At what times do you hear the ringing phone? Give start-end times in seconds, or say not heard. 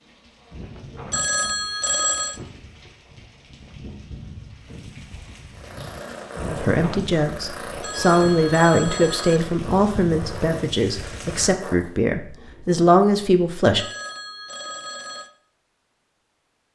1.1-2.4, 7.8-9.5, 13.8-15.3.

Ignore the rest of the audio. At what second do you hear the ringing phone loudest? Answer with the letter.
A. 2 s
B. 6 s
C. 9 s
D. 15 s
A.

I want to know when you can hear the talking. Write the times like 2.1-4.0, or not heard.
6.5-13.8.